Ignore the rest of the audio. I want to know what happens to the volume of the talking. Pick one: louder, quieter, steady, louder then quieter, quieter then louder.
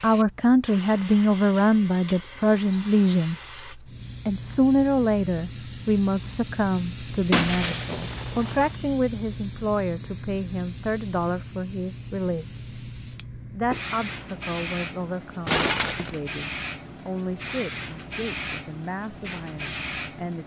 quieter.